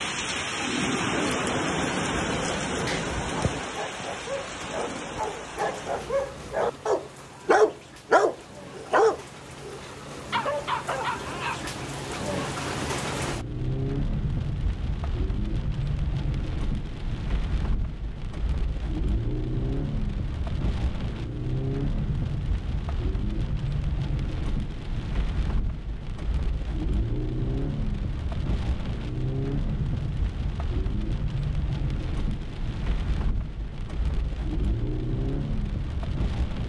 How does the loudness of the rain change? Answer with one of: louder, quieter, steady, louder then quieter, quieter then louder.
steady.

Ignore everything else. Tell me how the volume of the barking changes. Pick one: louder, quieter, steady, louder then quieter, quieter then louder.
louder then quieter.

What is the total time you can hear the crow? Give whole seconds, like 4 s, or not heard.
not heard.